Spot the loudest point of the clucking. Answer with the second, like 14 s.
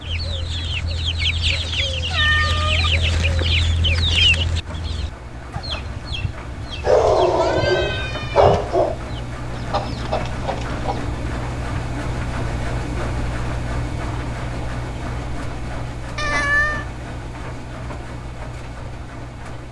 4 s.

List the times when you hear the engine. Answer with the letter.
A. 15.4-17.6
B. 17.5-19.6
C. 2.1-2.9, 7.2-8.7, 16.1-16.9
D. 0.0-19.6
D.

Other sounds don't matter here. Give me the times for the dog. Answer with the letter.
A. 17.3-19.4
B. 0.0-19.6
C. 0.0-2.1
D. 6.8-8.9
D.